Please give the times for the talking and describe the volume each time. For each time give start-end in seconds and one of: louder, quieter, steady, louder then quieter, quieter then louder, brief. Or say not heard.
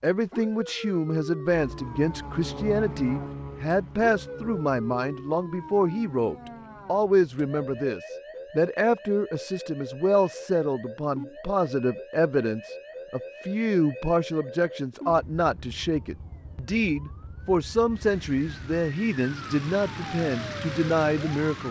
0.0-21.6 steady.